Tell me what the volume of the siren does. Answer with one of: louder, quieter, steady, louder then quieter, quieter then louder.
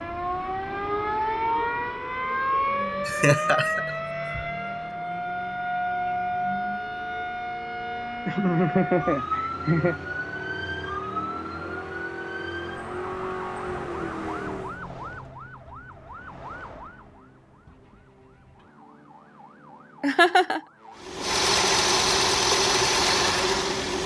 quieter.